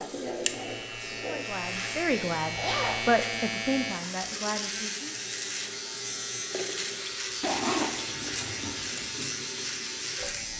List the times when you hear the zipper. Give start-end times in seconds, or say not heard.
2.5-3.0, 7.4-9.1.